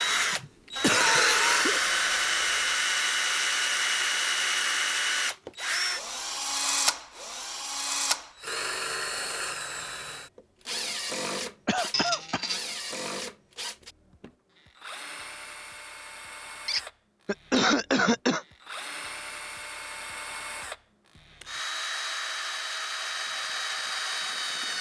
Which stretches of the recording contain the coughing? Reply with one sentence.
You can hear the coughing from 0.1 to 1.8 s, from 11.7 to 12.4 s and from 17.2 to 18.4 s.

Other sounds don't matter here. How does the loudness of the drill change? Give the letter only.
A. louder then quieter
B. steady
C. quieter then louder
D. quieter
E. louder
C.